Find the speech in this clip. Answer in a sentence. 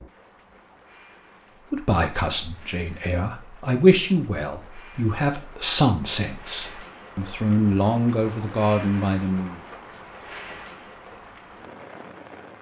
You can hear the speech from 1.7 to 9.6 s.